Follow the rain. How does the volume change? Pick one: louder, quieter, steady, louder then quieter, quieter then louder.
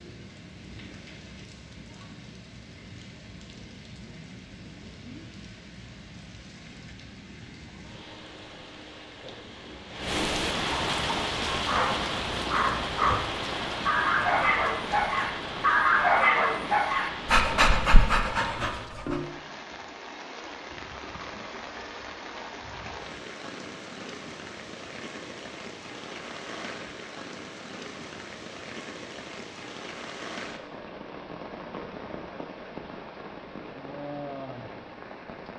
louder then quieter.